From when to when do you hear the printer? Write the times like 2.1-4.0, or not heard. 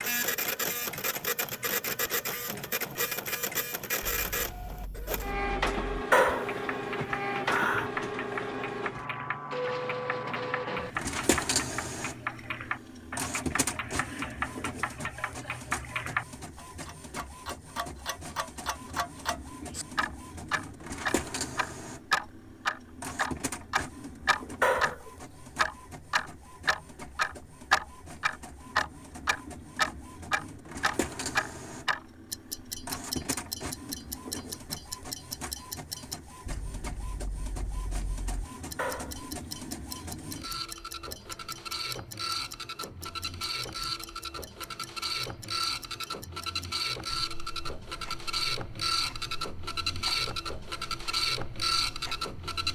0.0-52.6.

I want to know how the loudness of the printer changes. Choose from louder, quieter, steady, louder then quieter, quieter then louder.
quieter then louder.